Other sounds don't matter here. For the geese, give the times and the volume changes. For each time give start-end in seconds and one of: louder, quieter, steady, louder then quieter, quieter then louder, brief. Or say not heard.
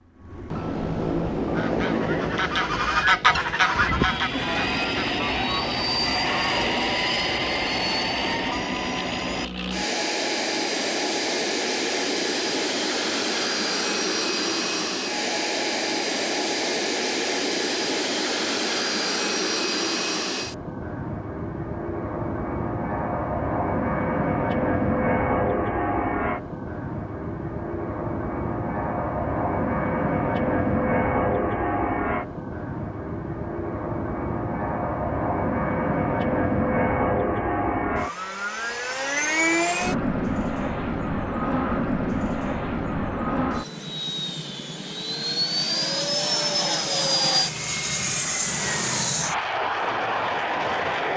1.4-6.7 louder then quieter.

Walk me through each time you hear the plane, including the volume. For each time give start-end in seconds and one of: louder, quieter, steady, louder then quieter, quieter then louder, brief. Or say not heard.
0.0-51.1 steady.